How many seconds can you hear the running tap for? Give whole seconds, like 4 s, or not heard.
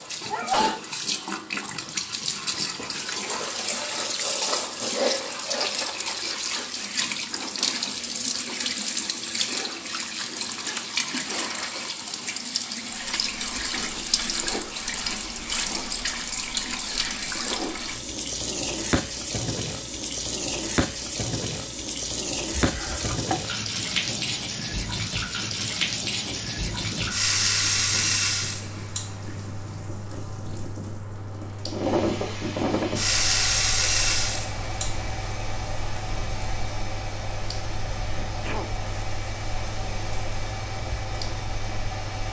42 s.